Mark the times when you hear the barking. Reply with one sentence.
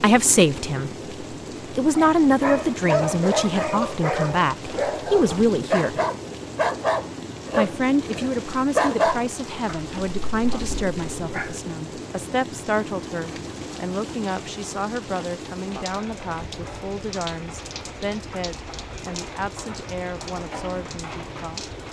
The barking can be heard from 1.9 to 11.6 s.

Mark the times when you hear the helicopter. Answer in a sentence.
The helicopter can't be heard in this clip.